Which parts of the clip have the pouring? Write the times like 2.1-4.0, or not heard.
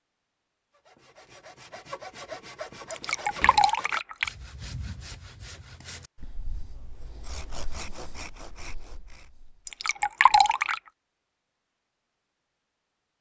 2.9-4.3, 9.7-10.8.